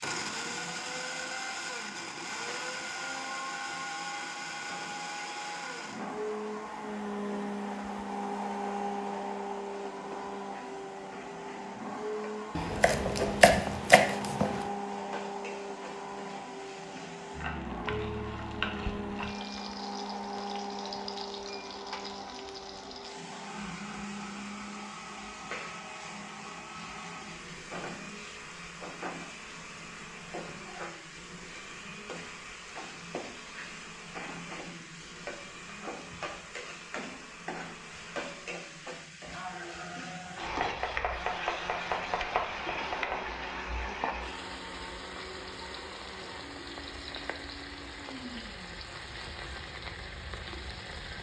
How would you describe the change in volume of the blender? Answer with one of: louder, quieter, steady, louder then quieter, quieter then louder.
quieter.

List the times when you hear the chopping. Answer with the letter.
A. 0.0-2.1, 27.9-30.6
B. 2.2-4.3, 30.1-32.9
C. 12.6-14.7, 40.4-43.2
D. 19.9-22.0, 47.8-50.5
C.